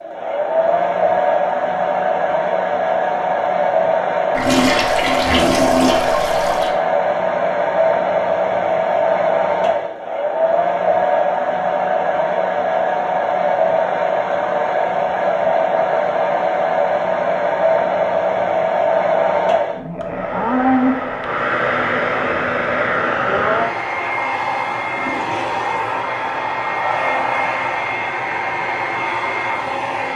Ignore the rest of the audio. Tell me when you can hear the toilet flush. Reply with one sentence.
You can hear the toilet flush from 4.3 to 6.7 s and from 24.9 to 25.6 s.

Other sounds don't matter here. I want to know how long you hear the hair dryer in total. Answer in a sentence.
The hair dryer can be heard for 30 seconds in total.